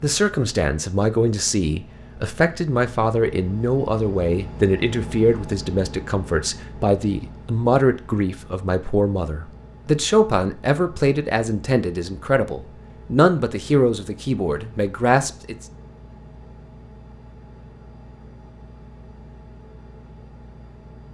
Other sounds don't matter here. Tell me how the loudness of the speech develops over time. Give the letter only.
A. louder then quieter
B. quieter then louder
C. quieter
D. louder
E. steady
E.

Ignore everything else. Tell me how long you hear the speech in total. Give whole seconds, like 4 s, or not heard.
16 s.